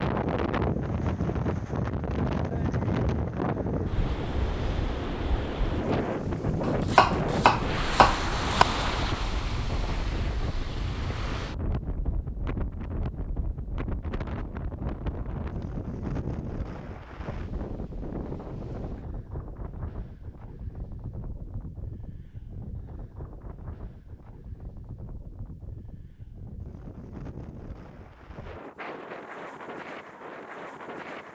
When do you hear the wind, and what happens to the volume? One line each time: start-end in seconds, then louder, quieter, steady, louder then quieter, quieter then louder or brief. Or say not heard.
0.0-31.2 quieter.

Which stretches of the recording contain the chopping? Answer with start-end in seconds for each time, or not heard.
6.6-8.7.